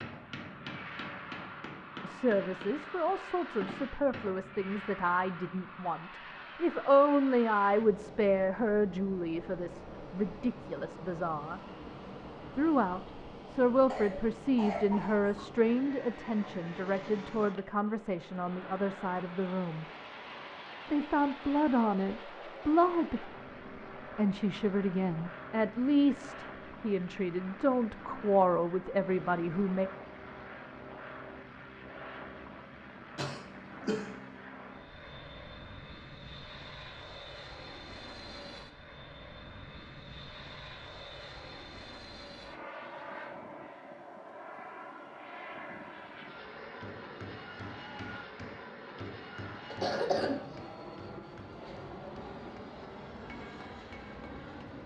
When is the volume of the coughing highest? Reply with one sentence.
The loudest moment of the coughing is at 50 seconds.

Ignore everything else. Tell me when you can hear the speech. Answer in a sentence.
You can hear the speech from 2.0 to 11.6 s, from 12.6 to 19.9 s, from 20.9 to 23.3 s and from 24.1 to 29.9 s.